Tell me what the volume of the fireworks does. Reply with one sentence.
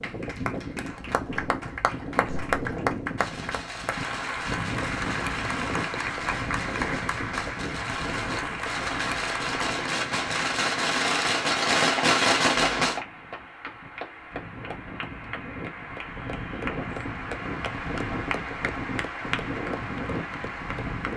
The loudness of the fireworks goes up.